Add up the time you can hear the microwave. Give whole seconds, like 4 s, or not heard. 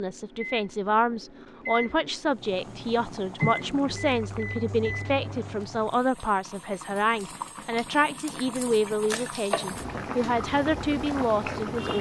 6 s.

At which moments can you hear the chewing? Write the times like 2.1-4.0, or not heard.
not heard.